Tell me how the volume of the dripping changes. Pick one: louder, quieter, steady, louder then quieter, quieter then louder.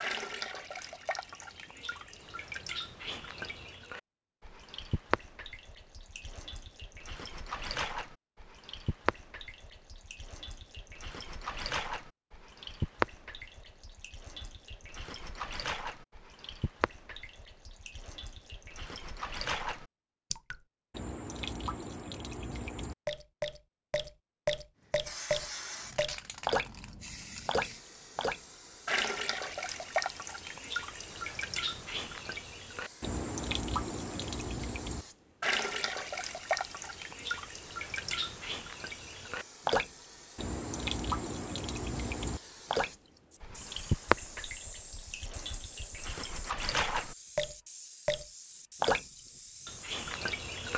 louder.